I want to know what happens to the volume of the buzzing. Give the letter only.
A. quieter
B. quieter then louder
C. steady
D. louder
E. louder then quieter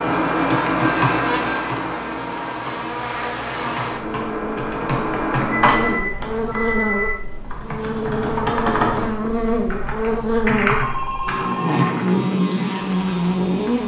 D.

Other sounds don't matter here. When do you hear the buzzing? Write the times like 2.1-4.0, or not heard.
0.0-13.8.